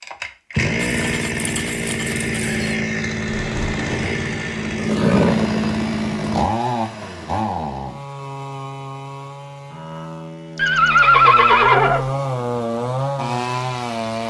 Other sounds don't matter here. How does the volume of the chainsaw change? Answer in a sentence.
The loudness of the chainsaw goes down, then up.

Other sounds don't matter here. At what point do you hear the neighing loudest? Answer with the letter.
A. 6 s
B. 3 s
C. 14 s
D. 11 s
D.